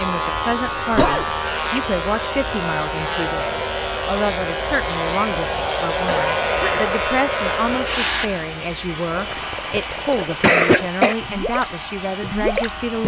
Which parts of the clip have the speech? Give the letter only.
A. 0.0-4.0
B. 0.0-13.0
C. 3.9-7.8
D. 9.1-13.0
B.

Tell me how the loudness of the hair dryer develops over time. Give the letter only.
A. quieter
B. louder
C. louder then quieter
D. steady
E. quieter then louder
C.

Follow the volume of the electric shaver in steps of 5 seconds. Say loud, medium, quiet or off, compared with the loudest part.
loud, loud, medium.